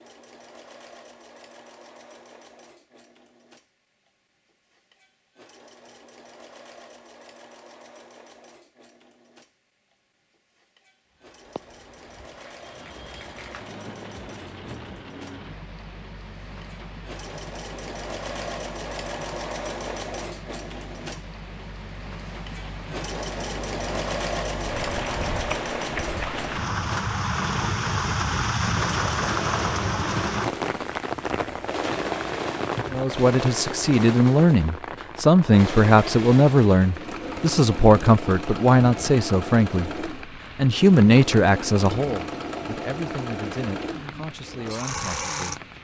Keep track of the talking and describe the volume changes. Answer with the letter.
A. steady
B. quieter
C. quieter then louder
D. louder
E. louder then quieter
B.